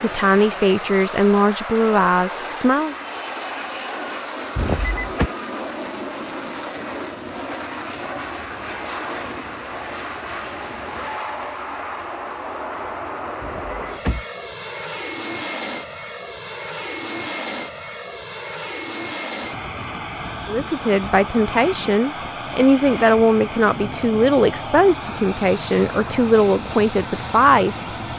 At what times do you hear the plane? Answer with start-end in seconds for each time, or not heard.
0.0-28.1.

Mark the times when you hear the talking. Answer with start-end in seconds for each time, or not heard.
0.0-3.0, 20.4-27.9.